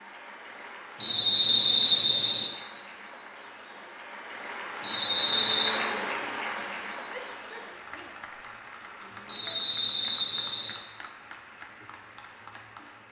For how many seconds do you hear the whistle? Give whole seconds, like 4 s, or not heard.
4 s.